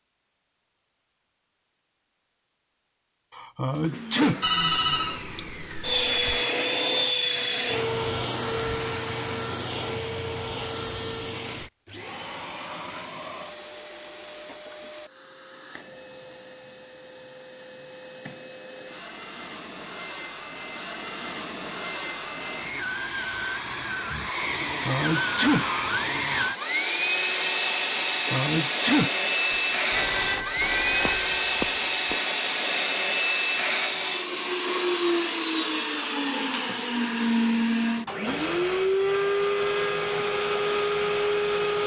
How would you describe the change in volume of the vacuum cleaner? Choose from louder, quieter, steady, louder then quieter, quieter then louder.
quieter then louder.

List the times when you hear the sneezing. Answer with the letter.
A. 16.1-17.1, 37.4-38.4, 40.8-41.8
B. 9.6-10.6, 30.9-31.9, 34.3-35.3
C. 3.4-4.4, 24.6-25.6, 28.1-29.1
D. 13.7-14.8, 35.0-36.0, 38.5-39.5
C.